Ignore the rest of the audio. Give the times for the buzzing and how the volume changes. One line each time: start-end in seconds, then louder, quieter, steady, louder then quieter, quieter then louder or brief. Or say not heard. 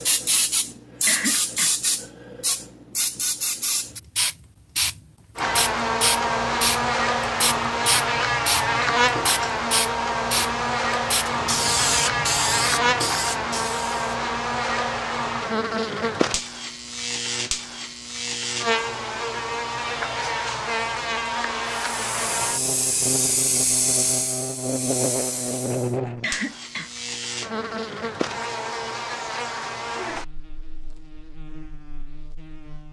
5.3-32.8 quieter.